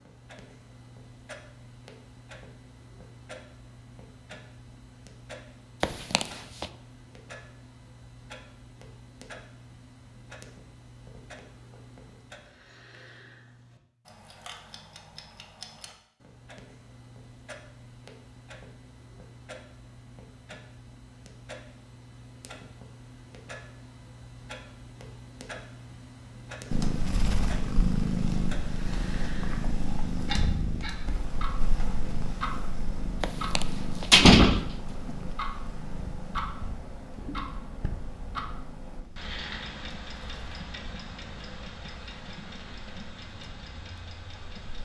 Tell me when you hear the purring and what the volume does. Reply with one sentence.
You can hear the purring from 26.7 to 44.7 s, getting quieter.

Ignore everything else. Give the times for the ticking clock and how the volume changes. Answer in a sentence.
You can hear the ticking clock from 0.0 to 44.7 s, getting louder.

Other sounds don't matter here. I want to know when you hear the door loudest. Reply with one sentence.
The volume of the door peaks at 34 seconds.